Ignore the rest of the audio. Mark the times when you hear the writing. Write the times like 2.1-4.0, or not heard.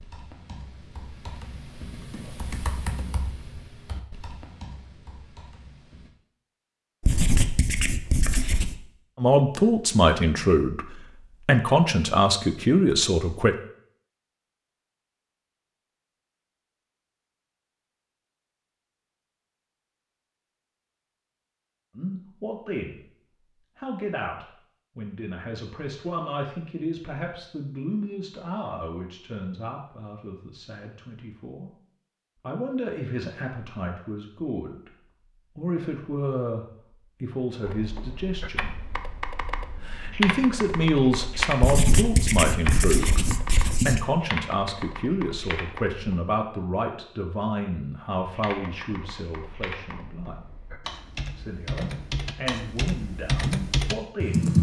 7.0-8.8, 41.6-44.0.